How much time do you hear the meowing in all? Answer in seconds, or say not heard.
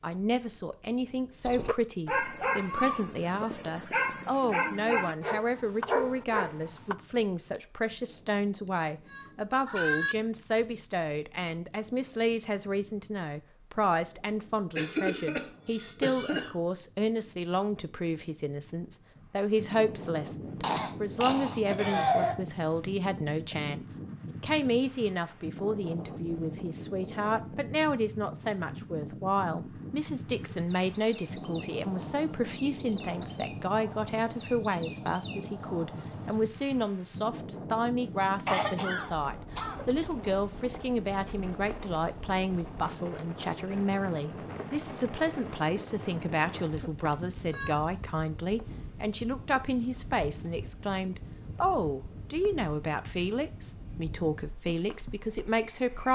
3 s.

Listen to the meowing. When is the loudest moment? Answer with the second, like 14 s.
10 s.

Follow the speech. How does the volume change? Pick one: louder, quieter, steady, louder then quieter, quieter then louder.
steady.